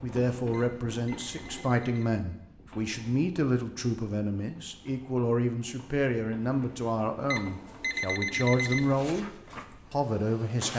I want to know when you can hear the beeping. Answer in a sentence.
The beeping can be heard from 0.5 to 2.2 s and from 7.3 to 9.1 s.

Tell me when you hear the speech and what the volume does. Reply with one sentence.
You can hear the speech from 0.0 to 9.3 s, at a steady volume; and briefly from 9.9 to 10.7 s.